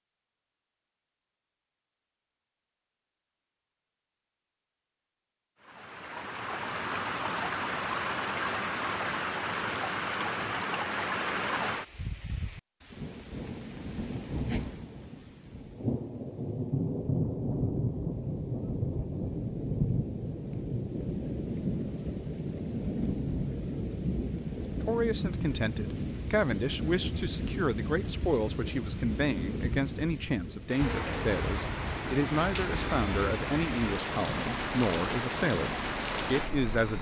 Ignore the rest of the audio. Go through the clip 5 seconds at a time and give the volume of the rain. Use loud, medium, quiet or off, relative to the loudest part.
off, loud, loud, loud, loud, loud, loud, loud.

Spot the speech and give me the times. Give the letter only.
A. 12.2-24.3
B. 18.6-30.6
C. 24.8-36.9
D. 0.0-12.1
C.